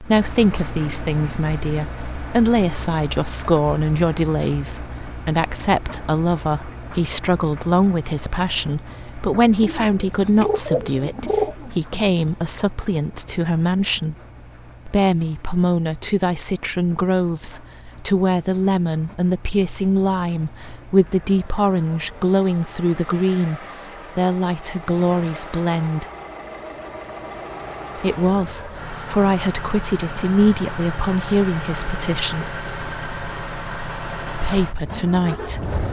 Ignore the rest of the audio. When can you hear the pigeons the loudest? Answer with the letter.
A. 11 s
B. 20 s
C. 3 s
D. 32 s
A.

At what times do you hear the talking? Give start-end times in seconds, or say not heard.
0.0-14.2, 14.8-26.1, 27.9-32.5, 34.4-35.6.